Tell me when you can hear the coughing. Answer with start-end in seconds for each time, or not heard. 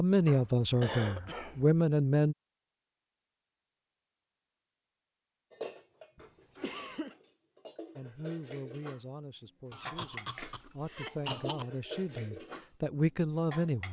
0.2-1.6, 6.2-7.2, 9.7-11.7.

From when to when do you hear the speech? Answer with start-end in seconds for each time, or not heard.
0.0-2.4, 8.0-13.8.